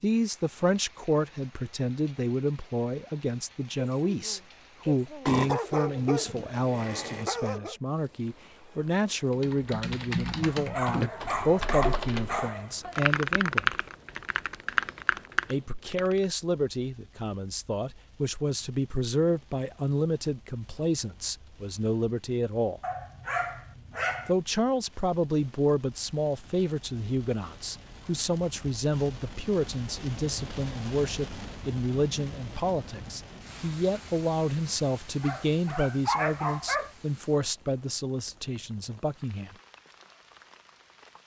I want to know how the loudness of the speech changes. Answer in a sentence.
The loudness of the speech stays about the same.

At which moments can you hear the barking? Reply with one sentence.
The barking can be heard from 5.2 to 7.8 s, from 10.4 to 12.8 s, from 22.8 to 24.4 s and from 35.2 to 36.9 s.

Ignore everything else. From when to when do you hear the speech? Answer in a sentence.
The speech can be heard from 0.0 to 13.8 s, from 15.4 to 22.8 s and from 24.2 to 39.5 s.